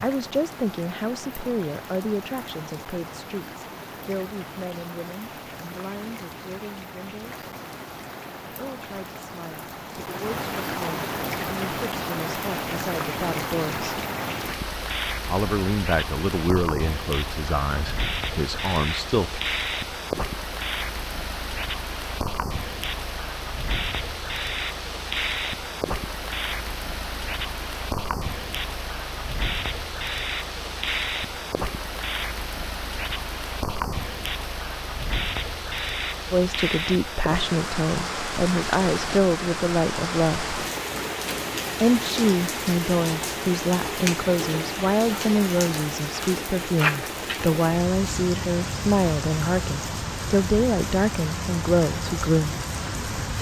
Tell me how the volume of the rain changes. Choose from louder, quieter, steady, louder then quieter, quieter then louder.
louder.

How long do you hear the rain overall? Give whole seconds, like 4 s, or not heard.
53 s.